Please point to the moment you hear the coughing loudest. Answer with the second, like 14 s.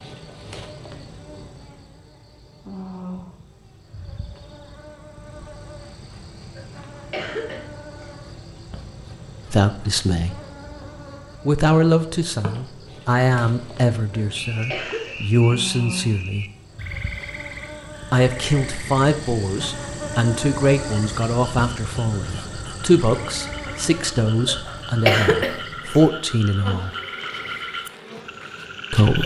25 s.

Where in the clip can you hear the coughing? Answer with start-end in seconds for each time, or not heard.
6.5-8.1, 14.1-15.2, 24.4-26.0.